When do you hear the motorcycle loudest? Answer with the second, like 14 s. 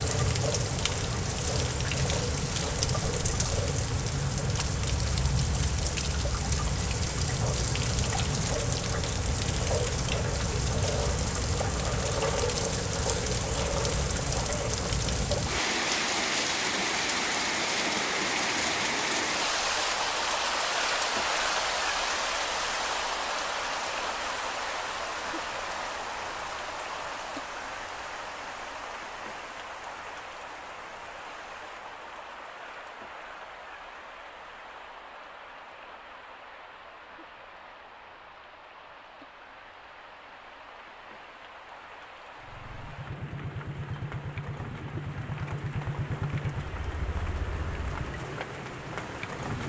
46 s.